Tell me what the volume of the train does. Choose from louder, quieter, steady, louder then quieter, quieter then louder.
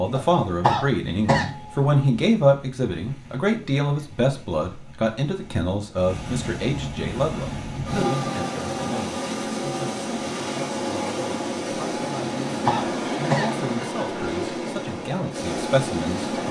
louder.